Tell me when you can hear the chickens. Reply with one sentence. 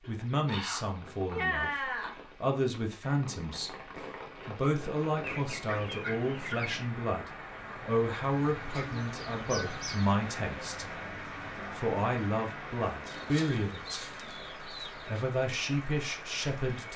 The chickens can be heard from 0.0 to 2.3 s, from 5.2 to 7.0 s, from 8.7 to 10.2 s and from 13.1 to 15.2 s.